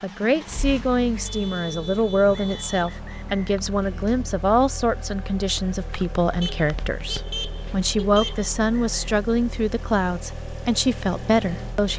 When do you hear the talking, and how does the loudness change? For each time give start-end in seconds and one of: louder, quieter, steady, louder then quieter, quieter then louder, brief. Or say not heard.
0.0-11.9 steady.